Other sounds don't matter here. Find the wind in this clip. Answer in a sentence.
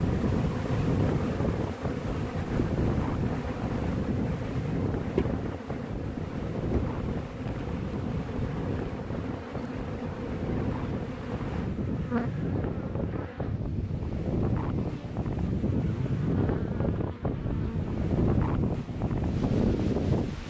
You can hear the wind from 0.0 to 20.4 s.